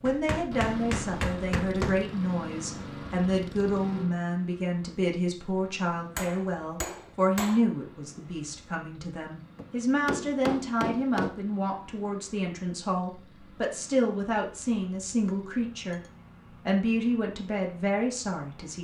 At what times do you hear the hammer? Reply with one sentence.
The hammer can be heard from 0.1 to 2.0 s, from 6.2 to 7.6 s, from 9.6 to 11.4 s and from 14.6 to 16.6 s.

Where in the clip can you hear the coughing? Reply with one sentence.
You can't hear the coughing here.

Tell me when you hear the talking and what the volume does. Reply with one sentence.
The talking can be heard from 0.0 to 16.0 s, at a steady volume; and briefly from 16.6 to 18.8 s.